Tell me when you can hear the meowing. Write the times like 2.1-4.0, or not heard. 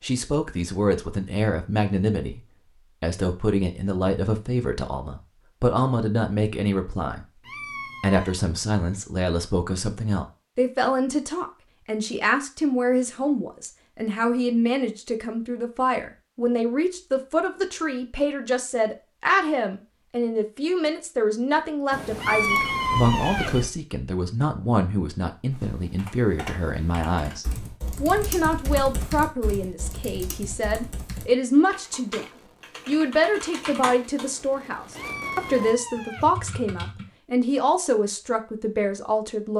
7.4-8.3, 22.2-23.6, 34.9-36.4.